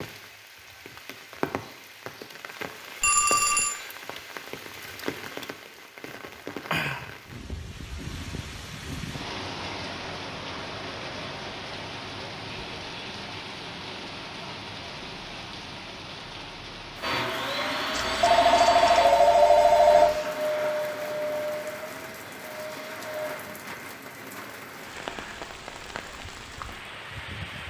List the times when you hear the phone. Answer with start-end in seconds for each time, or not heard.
3.0-3.8, 17.9-20.2.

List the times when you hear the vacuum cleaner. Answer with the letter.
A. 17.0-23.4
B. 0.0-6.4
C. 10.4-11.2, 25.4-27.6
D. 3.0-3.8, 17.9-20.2
A.